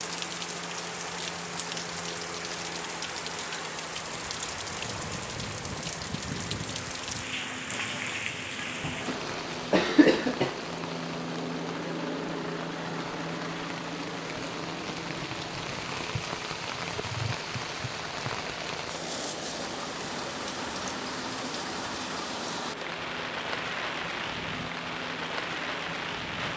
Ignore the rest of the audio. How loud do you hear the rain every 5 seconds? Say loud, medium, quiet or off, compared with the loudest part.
loud, loud, medium, loud, loud, loud.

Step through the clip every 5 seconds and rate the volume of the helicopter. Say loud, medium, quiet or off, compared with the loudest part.
medium, medium, loud, medium, medium, medium.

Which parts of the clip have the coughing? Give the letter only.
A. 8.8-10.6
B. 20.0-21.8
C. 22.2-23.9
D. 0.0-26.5
A.